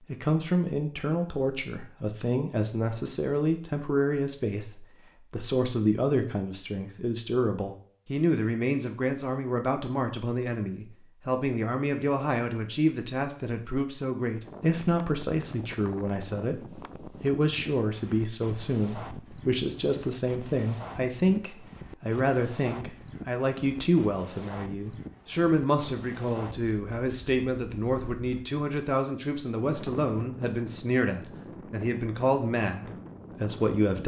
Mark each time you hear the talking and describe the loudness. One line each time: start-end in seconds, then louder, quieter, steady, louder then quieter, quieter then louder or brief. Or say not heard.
0.1-34.0 steady.